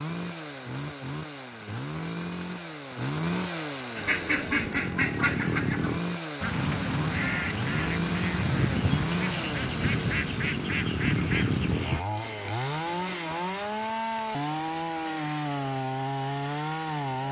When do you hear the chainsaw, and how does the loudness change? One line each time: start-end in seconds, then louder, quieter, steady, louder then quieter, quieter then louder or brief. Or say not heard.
0.0-17.2 steady.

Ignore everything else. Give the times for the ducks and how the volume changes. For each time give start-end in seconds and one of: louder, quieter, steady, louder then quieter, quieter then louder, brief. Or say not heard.
4.0-12.1 steady.